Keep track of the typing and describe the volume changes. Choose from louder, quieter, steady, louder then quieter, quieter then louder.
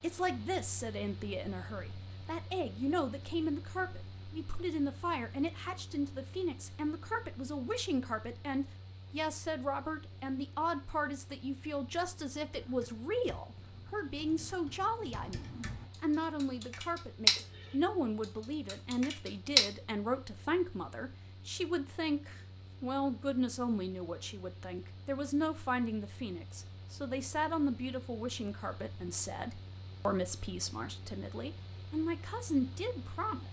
louder then quieter.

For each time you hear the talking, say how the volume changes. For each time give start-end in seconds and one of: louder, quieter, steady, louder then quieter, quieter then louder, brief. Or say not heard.
0.0-33.4 steady.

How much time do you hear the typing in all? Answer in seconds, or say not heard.
7 s.